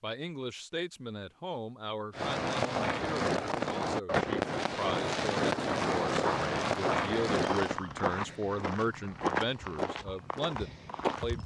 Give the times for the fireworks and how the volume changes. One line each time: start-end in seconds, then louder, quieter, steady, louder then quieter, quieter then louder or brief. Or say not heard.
2.1-7.8 steady.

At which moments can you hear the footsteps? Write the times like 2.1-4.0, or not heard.
6.0-11.4.